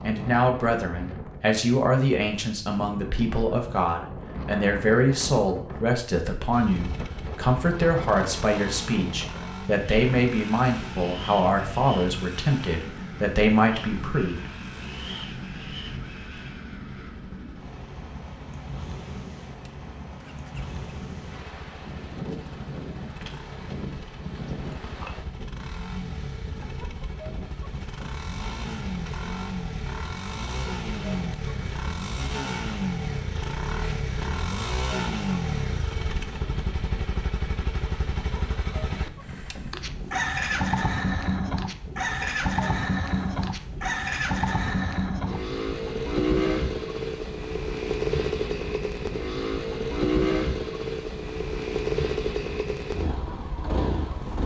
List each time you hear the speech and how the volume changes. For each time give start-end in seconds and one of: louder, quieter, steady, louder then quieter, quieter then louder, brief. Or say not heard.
0.0-14.5 steady.